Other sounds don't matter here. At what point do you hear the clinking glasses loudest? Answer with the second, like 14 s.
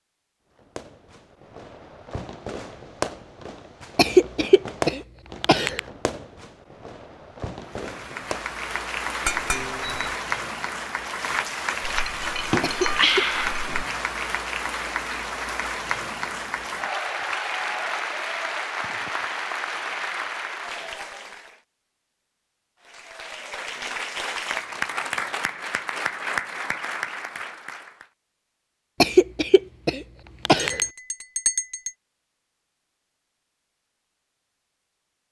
13 s.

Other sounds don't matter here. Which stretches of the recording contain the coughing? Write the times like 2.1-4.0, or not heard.
4.0-5.8, 12.6-13.1, 29.0-30.8.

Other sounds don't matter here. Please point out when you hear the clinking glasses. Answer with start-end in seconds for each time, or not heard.
9.2-10.2, 11.8-13.6, 30.6-31.9.